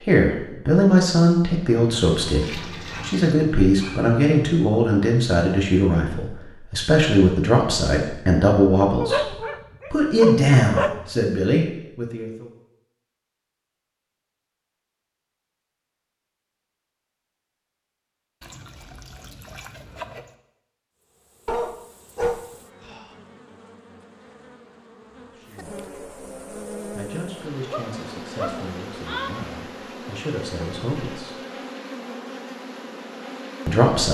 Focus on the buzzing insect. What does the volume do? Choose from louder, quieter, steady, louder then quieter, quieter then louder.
louder.